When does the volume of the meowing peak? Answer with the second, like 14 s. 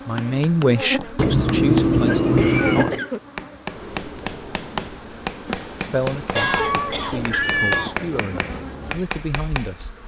2 s.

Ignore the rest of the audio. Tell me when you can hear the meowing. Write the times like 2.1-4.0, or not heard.
1.1-3.0, 6.3-7.9.